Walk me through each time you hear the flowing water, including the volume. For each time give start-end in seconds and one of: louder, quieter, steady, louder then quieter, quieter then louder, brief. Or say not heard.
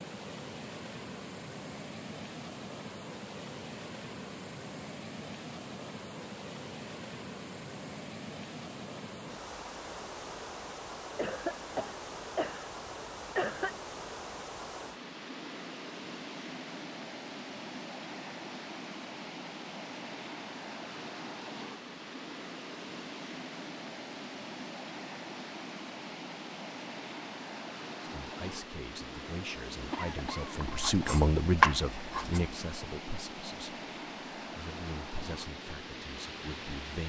0.0-37.0 steady.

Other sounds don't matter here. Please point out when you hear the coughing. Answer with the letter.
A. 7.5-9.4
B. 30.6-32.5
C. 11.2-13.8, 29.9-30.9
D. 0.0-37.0
C.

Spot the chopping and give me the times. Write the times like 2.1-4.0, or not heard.
30.6-32.5.